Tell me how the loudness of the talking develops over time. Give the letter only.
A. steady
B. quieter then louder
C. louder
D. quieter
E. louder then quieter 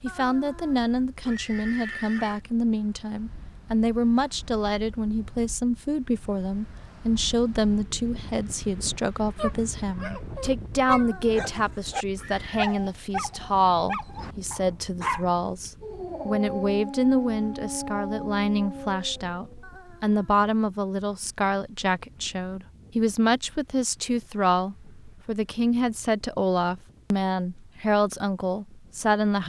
A.